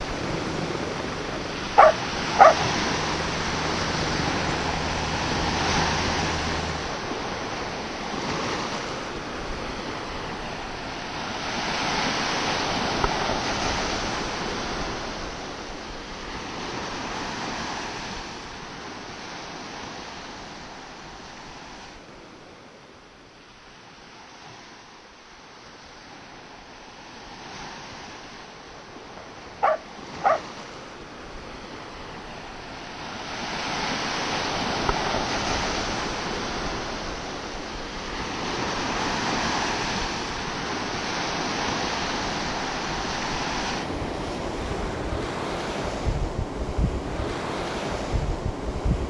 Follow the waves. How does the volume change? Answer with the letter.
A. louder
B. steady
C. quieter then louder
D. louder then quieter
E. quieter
C.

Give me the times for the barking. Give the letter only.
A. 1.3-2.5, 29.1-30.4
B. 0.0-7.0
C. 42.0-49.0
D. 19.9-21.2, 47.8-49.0
A.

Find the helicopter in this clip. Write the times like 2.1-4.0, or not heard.
0.0-7.0.